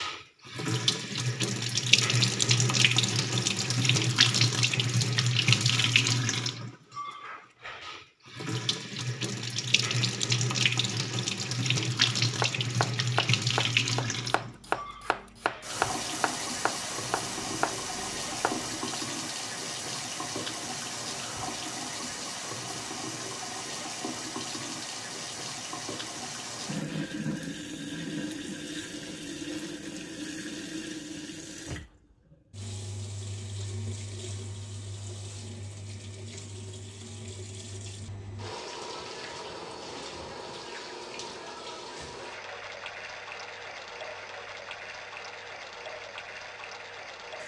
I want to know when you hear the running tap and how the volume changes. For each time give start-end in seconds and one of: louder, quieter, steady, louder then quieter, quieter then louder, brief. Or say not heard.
0.0-47.4 quieter.